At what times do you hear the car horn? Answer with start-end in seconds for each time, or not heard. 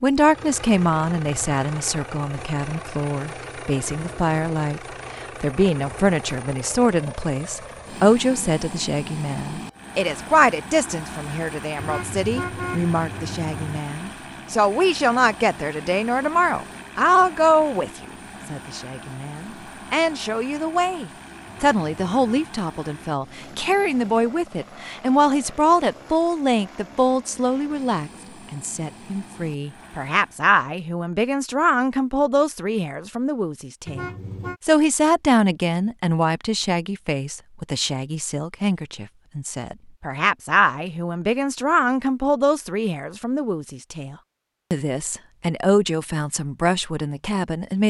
11.8-13.8, 21.4-22.5, 33.9-34.6.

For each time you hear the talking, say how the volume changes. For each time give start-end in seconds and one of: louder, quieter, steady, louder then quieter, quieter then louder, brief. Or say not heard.
0.0-47.8 steady.